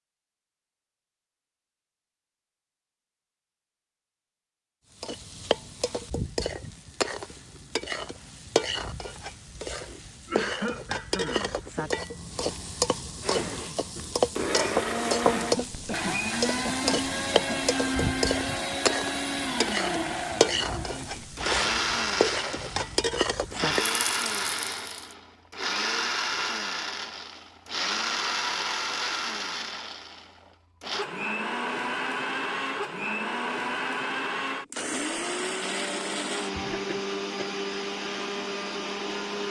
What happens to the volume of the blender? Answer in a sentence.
The loudness of the blender stays about the same.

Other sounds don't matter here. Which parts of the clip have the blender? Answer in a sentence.
You can hear the blender from 13.2 to 39.4 s.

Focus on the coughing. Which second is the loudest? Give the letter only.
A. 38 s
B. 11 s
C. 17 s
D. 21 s
B.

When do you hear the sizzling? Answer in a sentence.
The sizzling can be heard from 5.0 to 25.1 s.